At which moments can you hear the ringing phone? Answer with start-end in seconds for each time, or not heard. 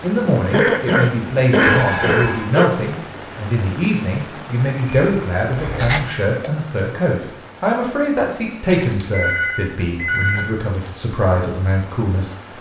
1.6-2.5, 4.8-6.0, 8.7-10.9.